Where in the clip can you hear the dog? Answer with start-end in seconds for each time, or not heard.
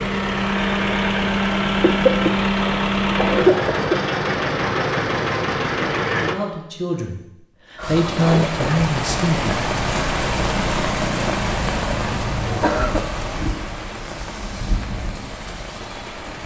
not heard.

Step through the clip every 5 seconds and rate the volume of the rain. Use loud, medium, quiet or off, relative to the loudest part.
off, loud, loud, medium.